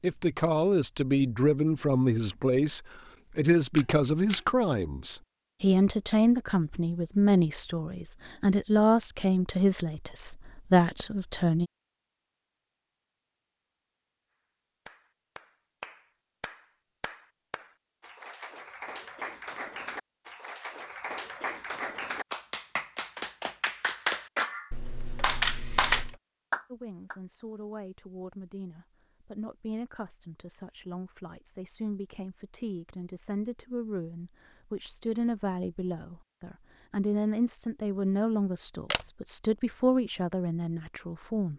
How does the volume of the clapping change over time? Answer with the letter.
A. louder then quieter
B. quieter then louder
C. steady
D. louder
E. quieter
D.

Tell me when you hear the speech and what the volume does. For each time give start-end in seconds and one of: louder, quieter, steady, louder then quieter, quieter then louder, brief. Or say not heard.
0.0-11.7 steady
26.7-41.5 louder.